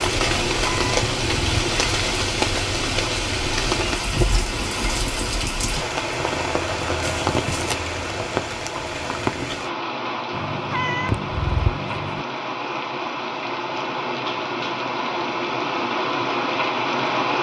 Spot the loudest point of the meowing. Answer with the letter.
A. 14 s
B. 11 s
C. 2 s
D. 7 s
B.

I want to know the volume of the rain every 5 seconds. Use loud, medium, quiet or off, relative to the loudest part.
loud, loud, medium, loud.